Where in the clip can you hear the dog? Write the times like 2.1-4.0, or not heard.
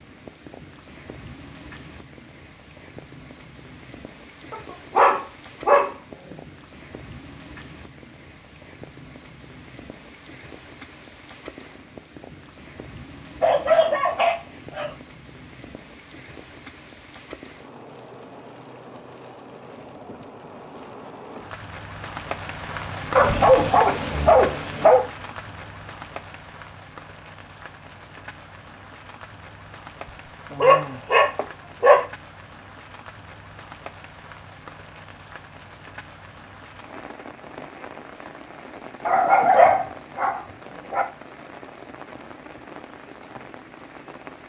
4.5-5.9, 13.4-14.9, 23.1-25.1, 30.5-32.0, 39.0-41.0.